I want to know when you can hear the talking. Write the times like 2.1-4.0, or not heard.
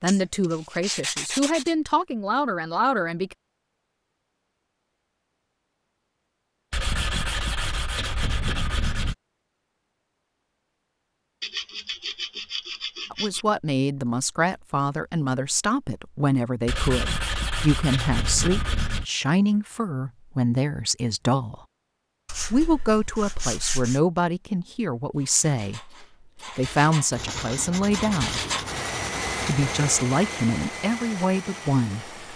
0.0-3.4, 13.1-21.6, 22.5-28.4, 29.4-32.1.